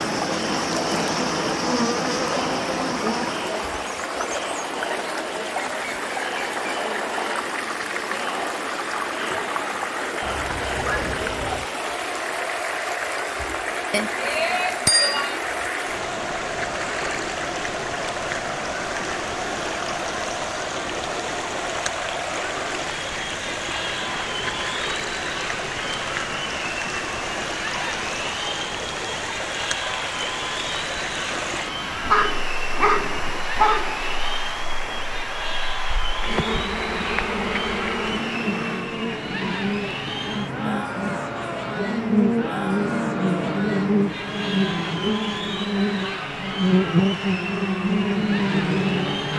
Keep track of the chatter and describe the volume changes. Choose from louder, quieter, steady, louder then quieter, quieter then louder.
steady.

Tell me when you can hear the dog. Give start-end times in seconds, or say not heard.
10.2-11.7, 31.9-34.0.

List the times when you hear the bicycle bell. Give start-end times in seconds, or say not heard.
13.9-15.4.